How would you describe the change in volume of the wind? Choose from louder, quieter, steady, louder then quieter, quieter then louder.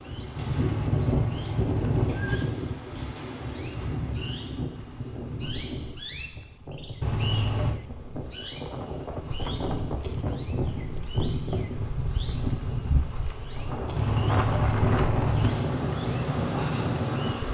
quieter then louder.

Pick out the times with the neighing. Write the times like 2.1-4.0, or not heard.
0.3-2.4, 7.0-7.8, 13.9-15.7.